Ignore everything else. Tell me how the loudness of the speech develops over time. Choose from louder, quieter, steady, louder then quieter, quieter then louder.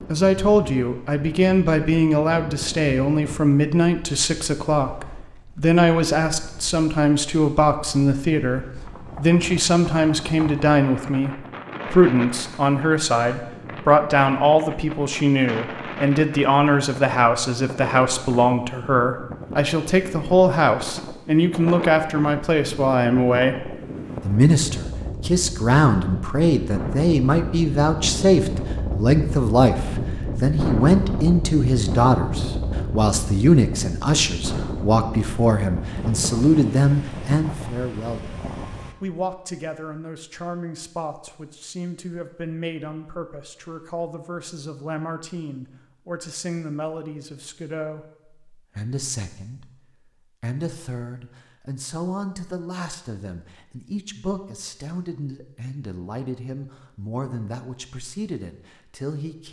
quieter.